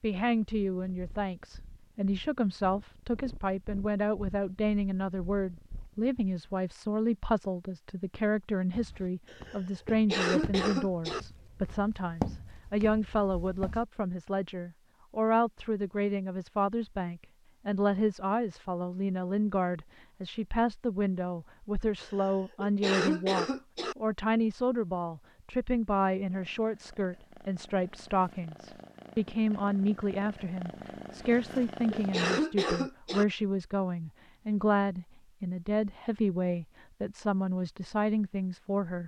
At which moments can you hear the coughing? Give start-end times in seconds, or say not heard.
9.3-11.2, 22.0-23.9, 31.3-33.2.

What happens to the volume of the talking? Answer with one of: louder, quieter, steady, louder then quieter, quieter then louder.
steady.